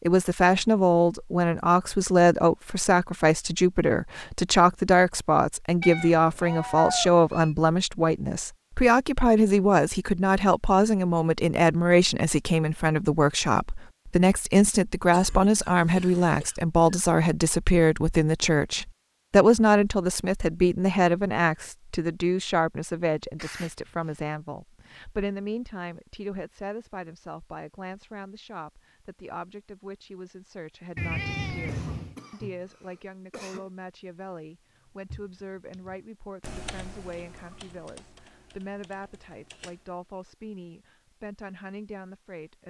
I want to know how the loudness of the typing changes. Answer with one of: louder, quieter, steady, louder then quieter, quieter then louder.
louder then quieter.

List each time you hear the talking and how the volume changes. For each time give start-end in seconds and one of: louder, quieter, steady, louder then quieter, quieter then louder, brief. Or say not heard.
0.0-42.6 quieter.